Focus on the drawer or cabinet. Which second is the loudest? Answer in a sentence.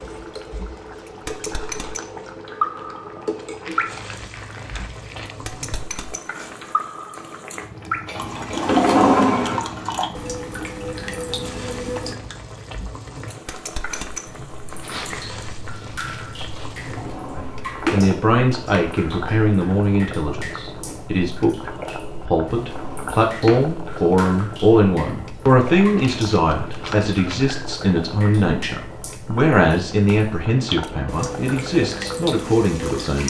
The loudest moment of the drawer or cabinet is at 9 seconds.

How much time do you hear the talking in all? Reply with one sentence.
The talking can be heard for 16 seconds in total.